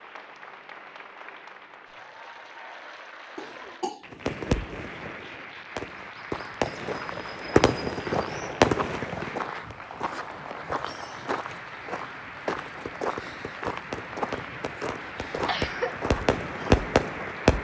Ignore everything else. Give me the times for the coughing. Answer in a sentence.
The coughing can be heard from 3.4 to 4.0 s and from 15.3 to 15.9 s.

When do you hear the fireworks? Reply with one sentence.
You can hear the fireworks from 4.1 to 9.3 s and from 12.4 to 17.6 s.